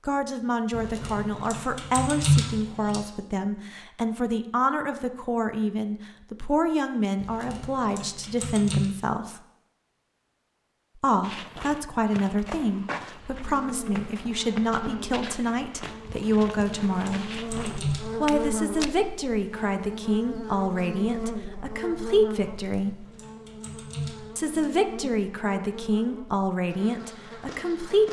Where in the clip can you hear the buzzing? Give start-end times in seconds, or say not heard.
13.4-28.0.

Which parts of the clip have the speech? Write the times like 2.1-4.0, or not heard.
0.1-9.4, 10.9-17.2, 18.2-23.1, 24.4-28.0.